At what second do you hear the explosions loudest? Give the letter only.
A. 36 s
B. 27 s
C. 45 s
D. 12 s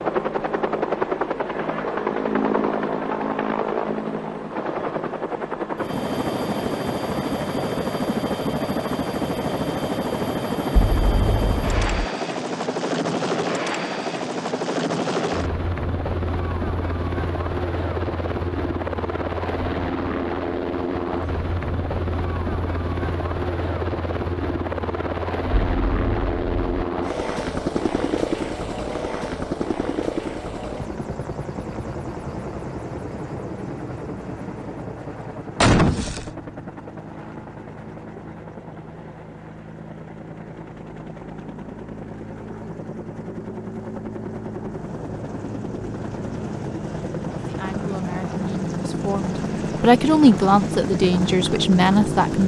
A.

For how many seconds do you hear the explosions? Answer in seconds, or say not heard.
3 s.